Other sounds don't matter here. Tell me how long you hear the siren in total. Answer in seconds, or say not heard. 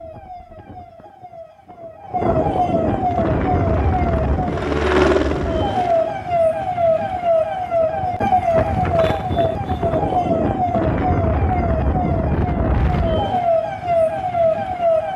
15 s.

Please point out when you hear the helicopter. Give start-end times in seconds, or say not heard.
2.9-6.3.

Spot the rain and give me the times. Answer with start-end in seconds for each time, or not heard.
not heard.